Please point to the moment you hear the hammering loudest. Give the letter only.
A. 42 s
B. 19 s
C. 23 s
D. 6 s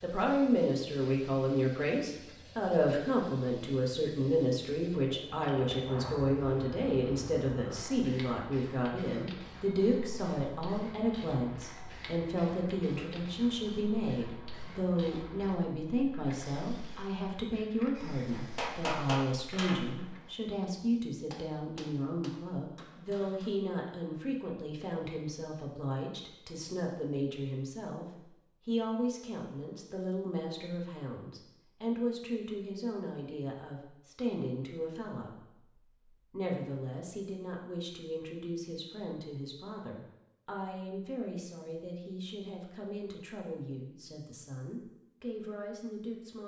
B.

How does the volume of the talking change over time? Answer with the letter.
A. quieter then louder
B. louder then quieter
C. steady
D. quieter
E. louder
D.